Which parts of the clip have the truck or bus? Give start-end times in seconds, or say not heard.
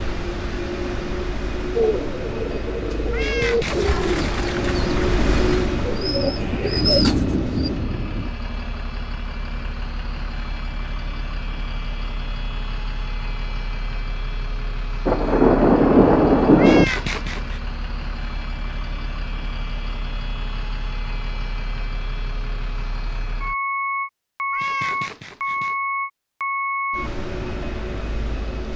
0.0-28.7.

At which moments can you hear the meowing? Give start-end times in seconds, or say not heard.
3.1-4.7, 16.6-17.6, 24.5-25.8.